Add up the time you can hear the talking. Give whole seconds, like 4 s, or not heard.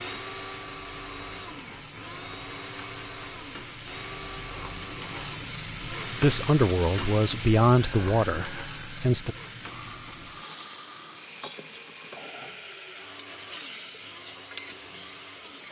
3 s.